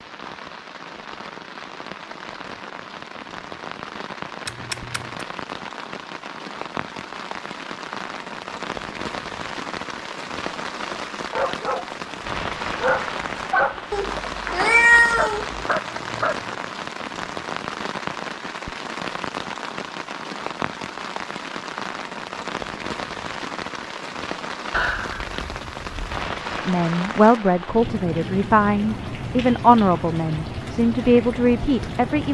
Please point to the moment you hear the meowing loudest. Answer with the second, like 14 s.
15 s.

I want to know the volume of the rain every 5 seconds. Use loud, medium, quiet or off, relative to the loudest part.
medium, loud, loud, loud, loud, loud, loud.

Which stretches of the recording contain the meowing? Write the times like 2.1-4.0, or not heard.
4.5-5.2, 13.9-15.6, 24.7-26.2.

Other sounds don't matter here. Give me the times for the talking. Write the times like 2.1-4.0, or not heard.
26.6-32.2.